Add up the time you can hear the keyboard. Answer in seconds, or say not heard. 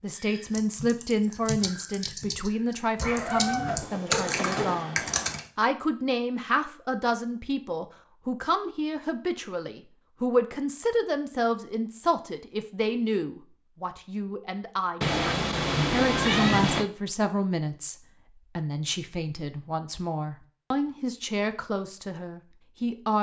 5 s.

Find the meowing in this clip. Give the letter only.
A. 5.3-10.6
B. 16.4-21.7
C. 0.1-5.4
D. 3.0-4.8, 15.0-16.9
D.